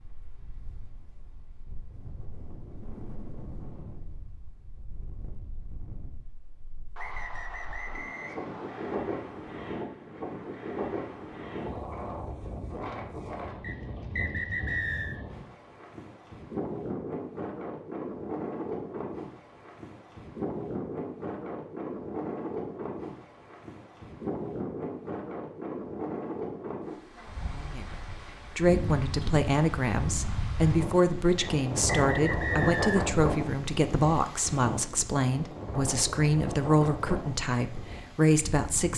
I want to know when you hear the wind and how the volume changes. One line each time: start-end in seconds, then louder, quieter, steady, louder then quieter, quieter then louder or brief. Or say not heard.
0.0-38.9 louder.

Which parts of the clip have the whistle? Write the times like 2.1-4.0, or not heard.
7.0-8.9, 13.6-15.2, 31.4-33.0.